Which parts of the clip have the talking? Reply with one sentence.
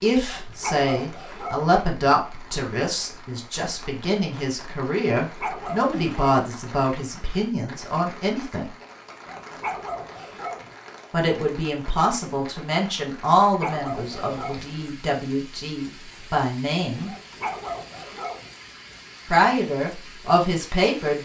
You can hear the talking from 0.0 to 8.7 s, from 11.1 to 17.1 s and from 19.3 to 21.2 s.